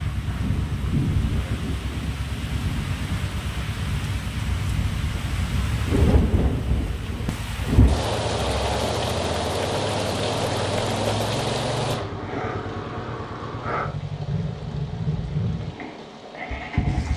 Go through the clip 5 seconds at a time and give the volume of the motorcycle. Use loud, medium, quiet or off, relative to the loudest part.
medium, medium, loud, loud.